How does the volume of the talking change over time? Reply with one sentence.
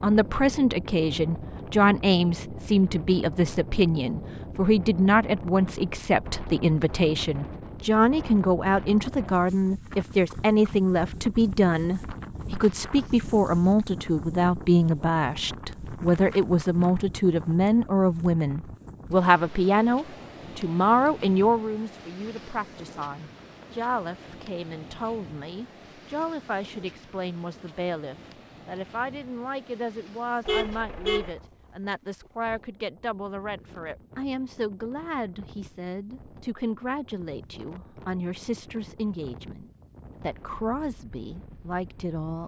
The volume of the talking goes down.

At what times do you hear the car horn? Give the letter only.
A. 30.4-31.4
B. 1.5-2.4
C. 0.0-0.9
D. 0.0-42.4
A.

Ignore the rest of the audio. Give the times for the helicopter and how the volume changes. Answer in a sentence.
You can't hear the helicopter here.